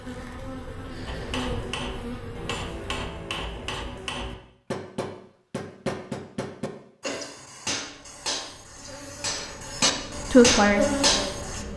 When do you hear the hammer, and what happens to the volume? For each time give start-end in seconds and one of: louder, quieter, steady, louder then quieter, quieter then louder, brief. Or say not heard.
1.1-11.7 louder.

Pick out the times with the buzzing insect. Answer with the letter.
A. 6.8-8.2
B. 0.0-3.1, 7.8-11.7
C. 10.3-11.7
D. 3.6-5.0
B.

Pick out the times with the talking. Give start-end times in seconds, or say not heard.
10.3-11.7.